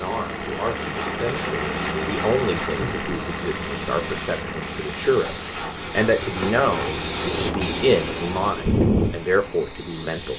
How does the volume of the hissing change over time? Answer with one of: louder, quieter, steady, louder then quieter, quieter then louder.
louder.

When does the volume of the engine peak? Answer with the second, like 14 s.
2 s.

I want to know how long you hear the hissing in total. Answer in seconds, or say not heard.
10 s.